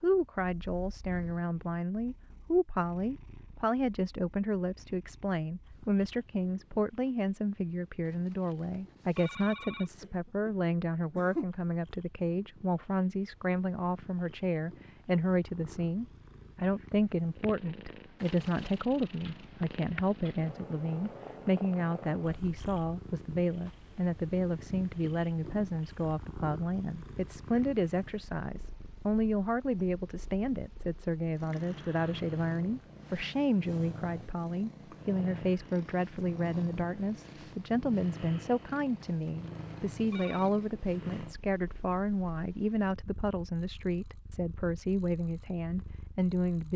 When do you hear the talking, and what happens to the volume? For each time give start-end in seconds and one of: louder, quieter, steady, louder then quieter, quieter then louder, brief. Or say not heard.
0.0-46.7 steady.